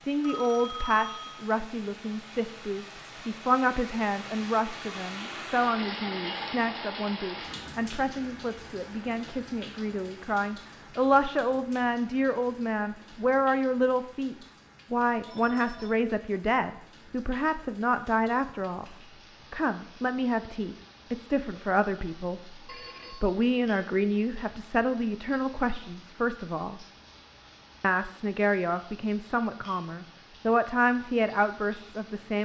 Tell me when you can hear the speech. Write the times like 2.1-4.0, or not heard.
0.0-26.9, 27.8-32.4.